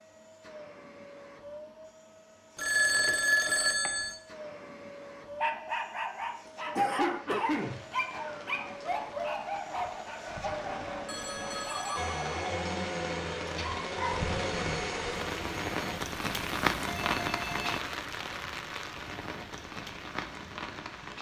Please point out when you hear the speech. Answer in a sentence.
The speech can't be heard in this clip.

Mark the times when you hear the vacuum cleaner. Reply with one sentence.
The vacuum cleaner can be heard from 0.0 to 16.0 s.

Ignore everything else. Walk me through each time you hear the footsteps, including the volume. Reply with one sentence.
The footsteps can't be heard in this clip.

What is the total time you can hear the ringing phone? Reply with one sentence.
The ringing phone can be heard for 4 seconds in total.